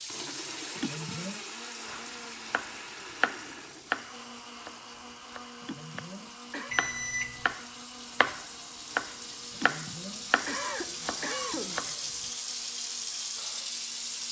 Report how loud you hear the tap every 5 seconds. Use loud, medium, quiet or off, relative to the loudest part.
medium, medium, loud.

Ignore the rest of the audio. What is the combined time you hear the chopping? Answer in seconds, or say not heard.
9 s.